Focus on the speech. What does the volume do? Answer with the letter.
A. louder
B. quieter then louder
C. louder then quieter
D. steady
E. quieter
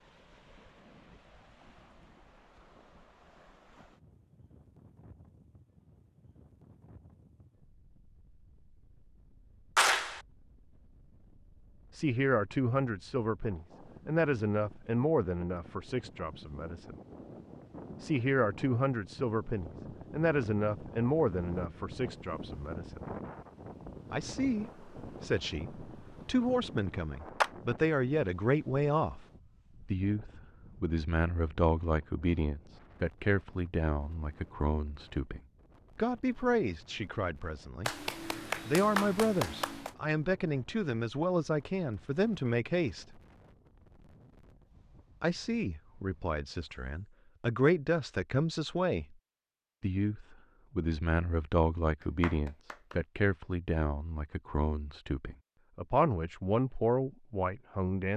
D.